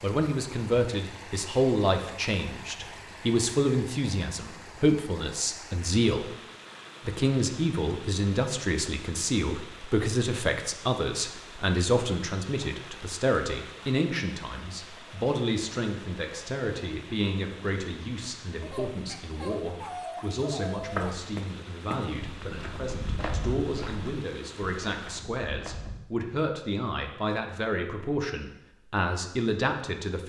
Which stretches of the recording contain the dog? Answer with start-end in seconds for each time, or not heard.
18.6-21.1.